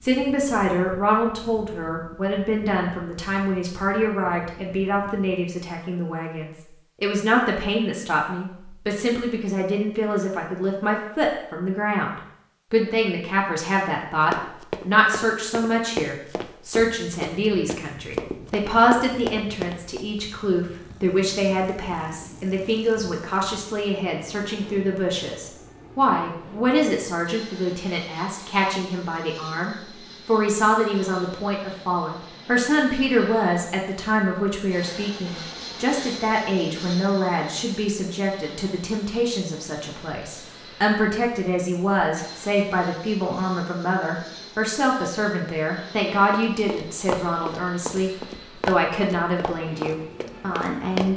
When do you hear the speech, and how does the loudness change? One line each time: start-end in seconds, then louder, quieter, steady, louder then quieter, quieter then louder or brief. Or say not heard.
0.0-51.1 steady.